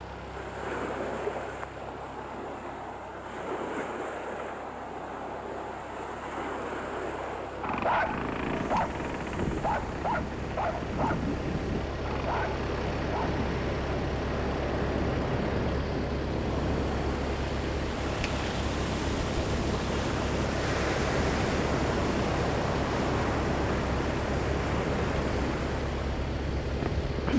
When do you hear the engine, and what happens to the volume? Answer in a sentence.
You can hear the engine from 0.0 to 27.3 s, getting louder.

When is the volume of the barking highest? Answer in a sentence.
The loudest moment of the barking is at 8 seconds.